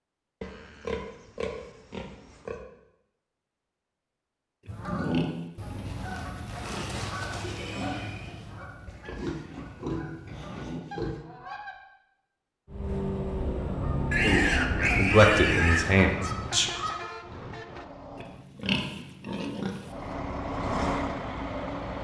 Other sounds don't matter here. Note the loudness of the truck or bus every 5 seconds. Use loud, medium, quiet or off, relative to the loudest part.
off, off, loud, medium, loud.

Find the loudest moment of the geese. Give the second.
5 s.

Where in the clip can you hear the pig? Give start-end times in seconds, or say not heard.
0.4-2.6, 4.7-6.9, 8.8-11.2, 14.1-15.9, 18.1-19.9.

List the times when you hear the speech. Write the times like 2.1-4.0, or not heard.
14.2-16.7.